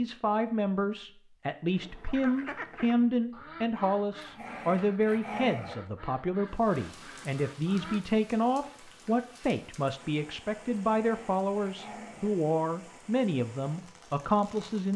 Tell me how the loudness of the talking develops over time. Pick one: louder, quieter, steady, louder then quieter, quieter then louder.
steady.